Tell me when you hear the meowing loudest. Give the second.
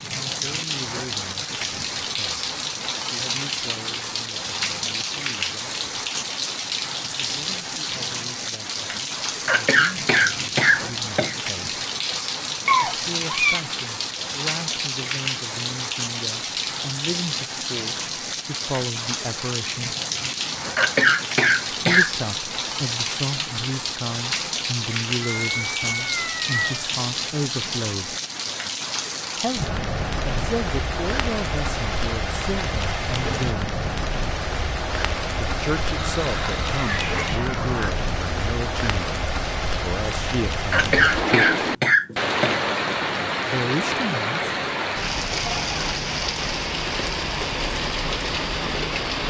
13 s.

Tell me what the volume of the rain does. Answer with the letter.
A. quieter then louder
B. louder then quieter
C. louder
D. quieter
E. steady
E.